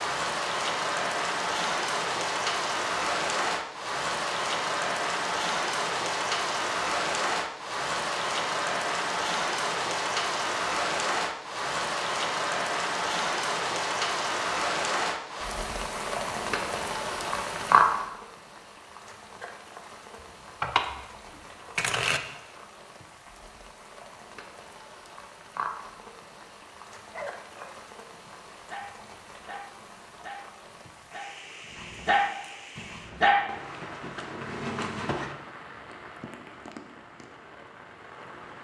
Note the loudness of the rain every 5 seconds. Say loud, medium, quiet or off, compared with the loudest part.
loud, loud, loud, loud, quiet, quiet, quiet, quiet.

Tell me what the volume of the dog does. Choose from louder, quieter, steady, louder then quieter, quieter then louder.
louder then quieter.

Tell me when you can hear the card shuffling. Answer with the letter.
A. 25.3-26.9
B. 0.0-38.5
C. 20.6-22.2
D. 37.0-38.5
C.